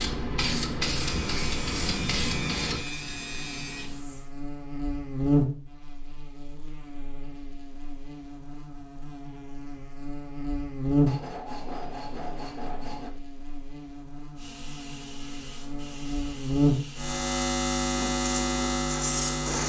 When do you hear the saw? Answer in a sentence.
The saw can be heard from 1.0 to 3.9 s and from 11.1 to 13.2 s.